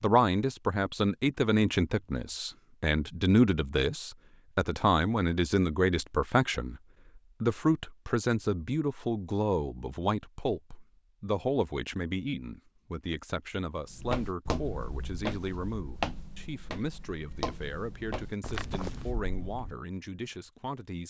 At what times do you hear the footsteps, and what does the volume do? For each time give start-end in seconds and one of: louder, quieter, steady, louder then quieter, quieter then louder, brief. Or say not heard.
13.9-19.8 quieter then louder.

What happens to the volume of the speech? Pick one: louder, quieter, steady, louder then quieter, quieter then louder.
quieter.